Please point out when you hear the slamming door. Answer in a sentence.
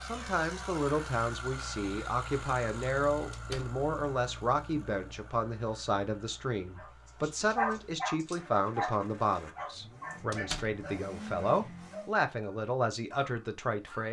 You can hear the slamming door from 3.3 to 3.8 s and from 10.3 to 10.8 s.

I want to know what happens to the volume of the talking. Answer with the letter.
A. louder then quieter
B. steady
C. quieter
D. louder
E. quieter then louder
B.